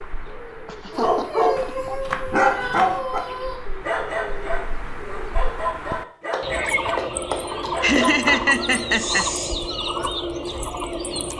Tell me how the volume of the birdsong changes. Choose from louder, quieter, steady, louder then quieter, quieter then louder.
louder.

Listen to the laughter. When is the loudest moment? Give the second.
8 s.